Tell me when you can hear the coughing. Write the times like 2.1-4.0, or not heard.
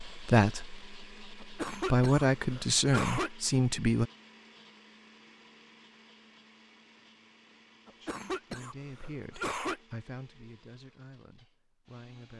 1.4-3.3, 7.8-9.8.